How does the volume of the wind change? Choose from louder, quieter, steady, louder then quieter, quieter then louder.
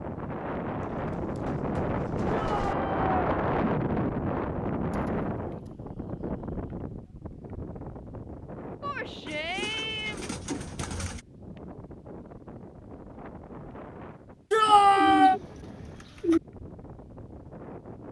quieter.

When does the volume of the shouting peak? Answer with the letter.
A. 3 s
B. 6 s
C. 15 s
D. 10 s
C.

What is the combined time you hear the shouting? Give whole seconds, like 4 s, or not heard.
3 s.